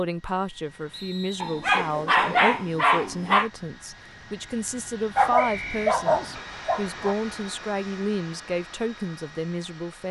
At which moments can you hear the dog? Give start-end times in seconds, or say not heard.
1.4-3.5, 5.2-7.2.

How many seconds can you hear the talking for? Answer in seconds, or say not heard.
10 s.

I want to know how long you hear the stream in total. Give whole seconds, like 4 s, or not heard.
not heard.